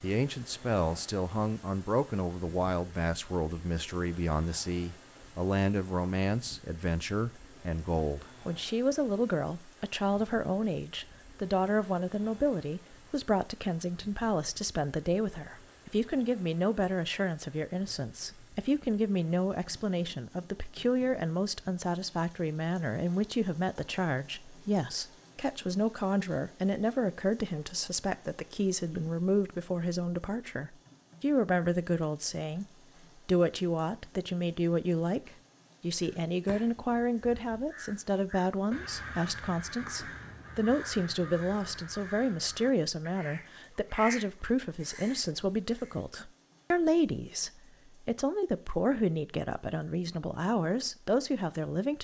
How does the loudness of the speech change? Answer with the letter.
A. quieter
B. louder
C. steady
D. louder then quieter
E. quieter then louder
C.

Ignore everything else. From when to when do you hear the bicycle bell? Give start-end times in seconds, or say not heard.
not heard.